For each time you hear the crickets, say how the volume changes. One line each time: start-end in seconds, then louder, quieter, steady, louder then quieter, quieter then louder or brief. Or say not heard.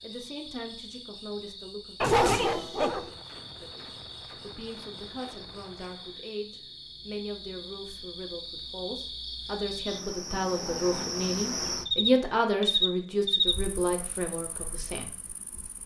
0.0-15.8 louder.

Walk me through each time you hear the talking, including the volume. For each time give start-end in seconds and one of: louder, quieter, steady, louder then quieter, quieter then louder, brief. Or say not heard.
0.0-15.1 louder.